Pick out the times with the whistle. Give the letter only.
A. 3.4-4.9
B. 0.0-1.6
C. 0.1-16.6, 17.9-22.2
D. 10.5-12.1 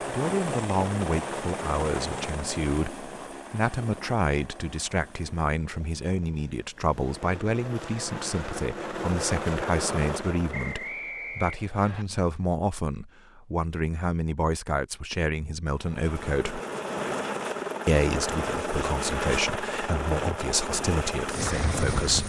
D.